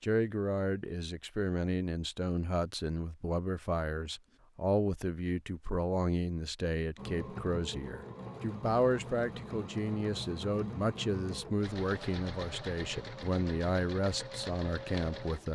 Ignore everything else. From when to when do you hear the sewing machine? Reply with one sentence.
You can hear the sewing machine from 7.0 to 15.4 s.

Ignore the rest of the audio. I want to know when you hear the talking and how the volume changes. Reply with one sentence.
The talking can be heard from 0.0 to 15.4 s, at a steady volume.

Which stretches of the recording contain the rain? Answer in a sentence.
You can't hear the rain here.